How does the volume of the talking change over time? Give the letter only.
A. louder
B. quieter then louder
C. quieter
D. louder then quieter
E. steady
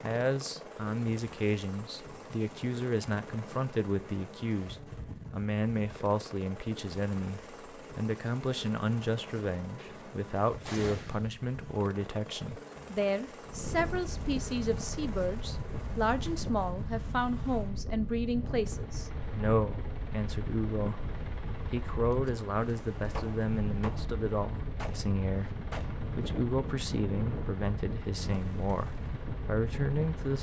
E.